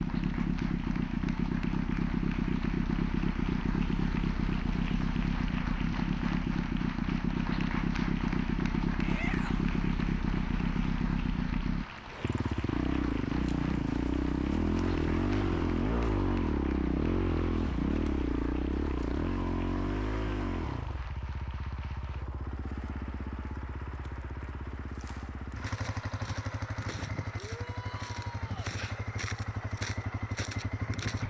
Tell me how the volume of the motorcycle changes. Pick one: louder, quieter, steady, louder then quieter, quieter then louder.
quieter.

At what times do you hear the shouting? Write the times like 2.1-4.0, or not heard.
9.0-9.7, 27.4-28.8.